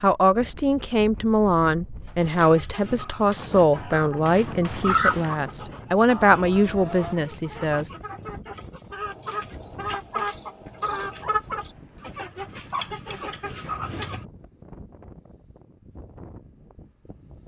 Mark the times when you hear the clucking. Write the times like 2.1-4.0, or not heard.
2.5-14.2.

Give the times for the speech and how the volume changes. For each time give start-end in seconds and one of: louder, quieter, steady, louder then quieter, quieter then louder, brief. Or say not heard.
0.0-7.9 steady.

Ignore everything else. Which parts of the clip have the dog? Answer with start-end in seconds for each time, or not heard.
not heard.